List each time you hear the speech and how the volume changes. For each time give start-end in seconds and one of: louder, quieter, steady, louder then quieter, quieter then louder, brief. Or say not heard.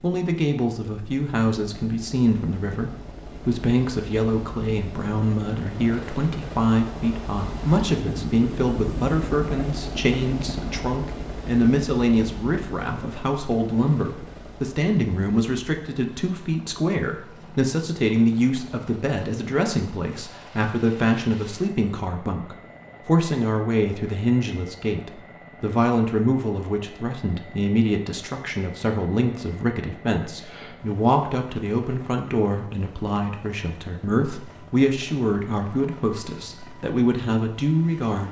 0.0-38.2 steady.